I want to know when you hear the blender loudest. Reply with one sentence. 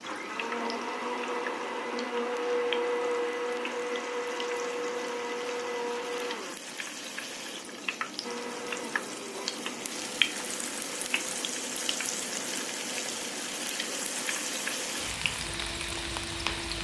The loudest moment of the blender is at 3 seconds.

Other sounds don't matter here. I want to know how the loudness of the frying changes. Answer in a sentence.
The volume of the frying goes up.